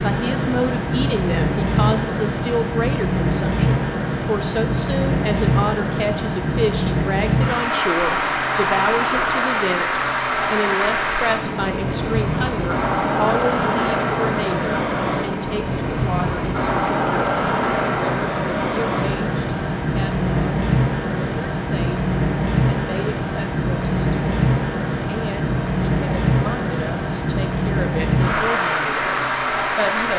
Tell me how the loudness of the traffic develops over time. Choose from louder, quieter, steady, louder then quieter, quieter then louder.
steady.